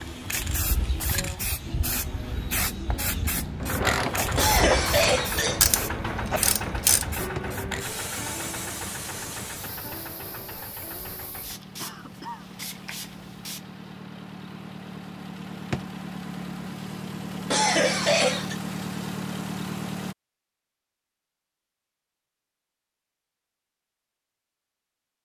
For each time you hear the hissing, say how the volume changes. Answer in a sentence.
The hissing can be heard from 0.0 to 13.8 s, getting quieter.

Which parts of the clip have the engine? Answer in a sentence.
You can hear the engine from 3.5 to 20.1 s.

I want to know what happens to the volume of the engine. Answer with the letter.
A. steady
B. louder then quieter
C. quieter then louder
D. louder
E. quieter
C.